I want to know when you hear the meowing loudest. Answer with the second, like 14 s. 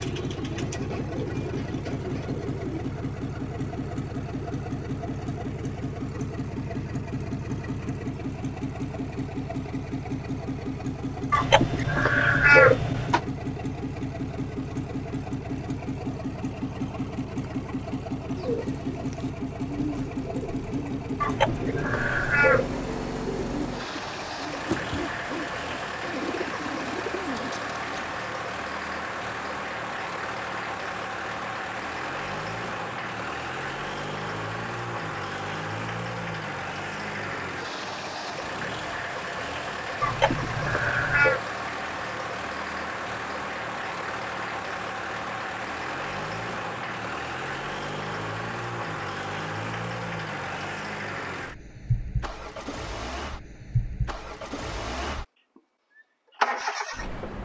13 s.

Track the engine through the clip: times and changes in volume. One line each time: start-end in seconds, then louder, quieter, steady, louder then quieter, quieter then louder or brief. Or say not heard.
0.0-57.4 steady.